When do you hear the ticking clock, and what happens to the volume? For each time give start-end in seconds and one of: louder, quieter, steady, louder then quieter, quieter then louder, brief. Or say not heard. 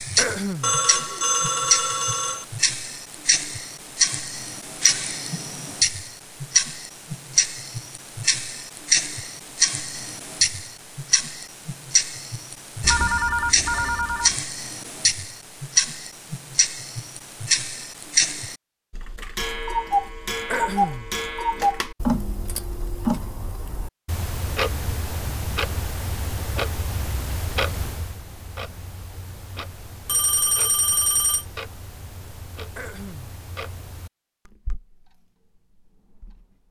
0.0-36.5 quieter.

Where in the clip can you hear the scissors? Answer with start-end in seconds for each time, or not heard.
not heard.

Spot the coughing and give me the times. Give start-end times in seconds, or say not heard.
0.1-0.8, 20.5-21.1, 32.8-33.4.